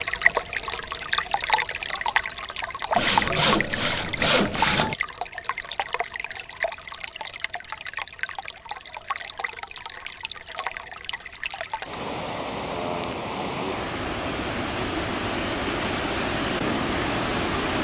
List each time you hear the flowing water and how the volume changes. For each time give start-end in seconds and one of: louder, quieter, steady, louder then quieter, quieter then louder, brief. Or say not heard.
0.0-17.7 quieter then louder.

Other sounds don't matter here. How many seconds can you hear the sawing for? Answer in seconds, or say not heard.
2 s.